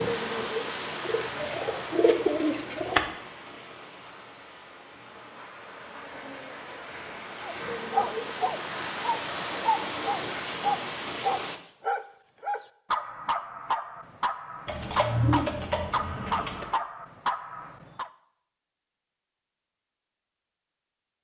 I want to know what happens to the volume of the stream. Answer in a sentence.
The volume of the stream goes down, then up.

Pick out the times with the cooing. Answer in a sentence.
You can hear the cooing from 1.0 to 3.0 s and from 14.7 to 16.6 s.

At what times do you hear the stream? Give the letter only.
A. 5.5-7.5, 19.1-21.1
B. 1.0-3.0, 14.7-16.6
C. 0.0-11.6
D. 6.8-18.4
C.